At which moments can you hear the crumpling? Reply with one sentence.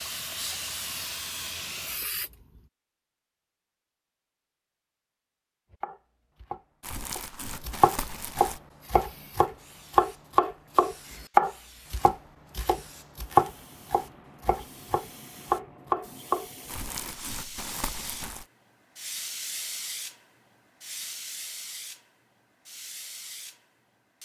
The crumpling can be heard from 6.8 to 8.6 s and from 16.6 to 18.4 s.